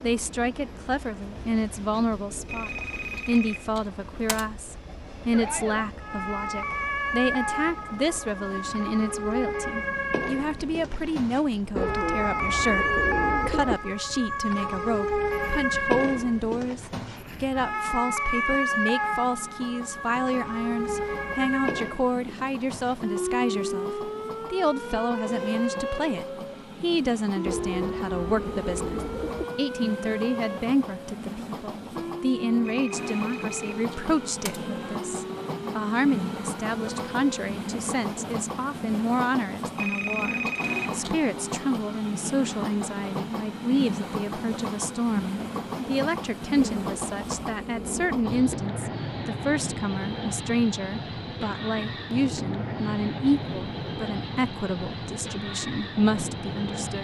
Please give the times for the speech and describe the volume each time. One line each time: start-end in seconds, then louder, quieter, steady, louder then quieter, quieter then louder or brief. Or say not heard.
0.0-56.9 steady.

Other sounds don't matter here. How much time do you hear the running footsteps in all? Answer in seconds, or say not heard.
not heard.